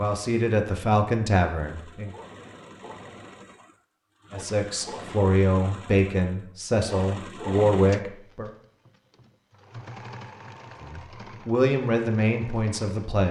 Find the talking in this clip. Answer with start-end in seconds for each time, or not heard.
0.0-2.1, 4.3-8.5, 10.8-13.2.